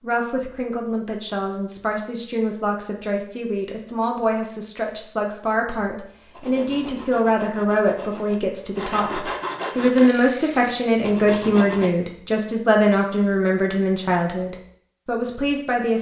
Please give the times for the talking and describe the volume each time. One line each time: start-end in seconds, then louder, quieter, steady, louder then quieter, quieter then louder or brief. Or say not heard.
0.0-15.9 louder.